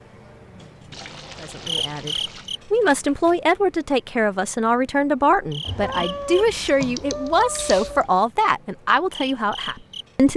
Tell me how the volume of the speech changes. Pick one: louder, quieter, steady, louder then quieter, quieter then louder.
steady.